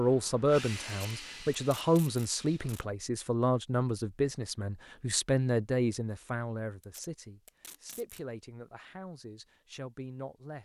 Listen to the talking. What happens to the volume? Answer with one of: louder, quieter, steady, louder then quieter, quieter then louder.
quieter.